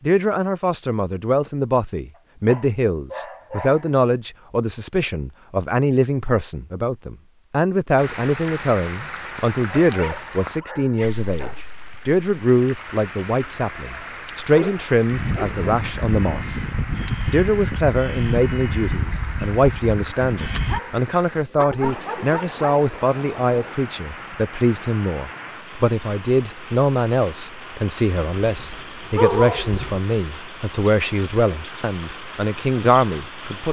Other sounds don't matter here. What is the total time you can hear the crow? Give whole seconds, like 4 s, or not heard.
6 s.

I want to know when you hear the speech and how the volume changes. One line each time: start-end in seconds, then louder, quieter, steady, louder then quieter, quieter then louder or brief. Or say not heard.
0.0-16.6 steady
17.3-33.6 steady.